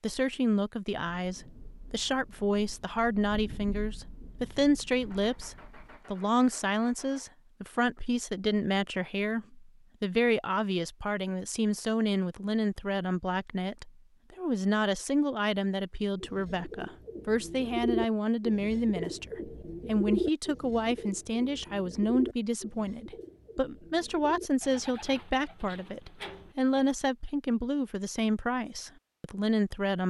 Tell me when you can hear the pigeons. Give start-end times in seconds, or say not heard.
16.2-26.9.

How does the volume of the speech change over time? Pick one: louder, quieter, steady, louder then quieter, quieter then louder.
steady.